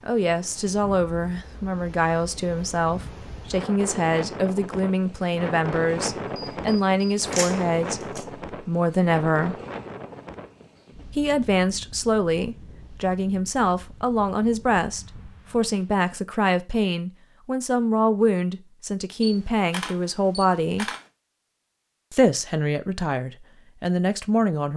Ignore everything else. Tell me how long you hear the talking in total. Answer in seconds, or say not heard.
22 s.